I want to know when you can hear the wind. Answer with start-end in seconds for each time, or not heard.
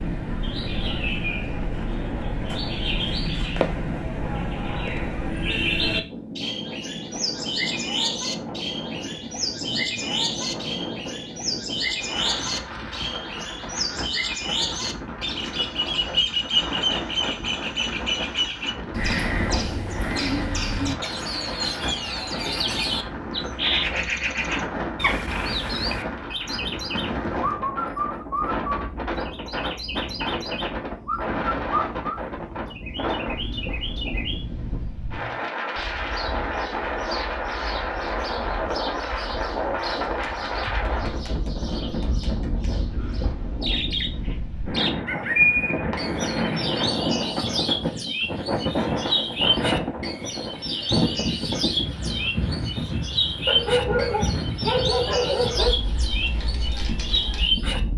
0.0-57.9.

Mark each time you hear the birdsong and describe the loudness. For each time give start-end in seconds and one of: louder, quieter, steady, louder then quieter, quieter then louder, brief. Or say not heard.
0.0-57.8 steady.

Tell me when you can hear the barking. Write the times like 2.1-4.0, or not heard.
53.5-55.8.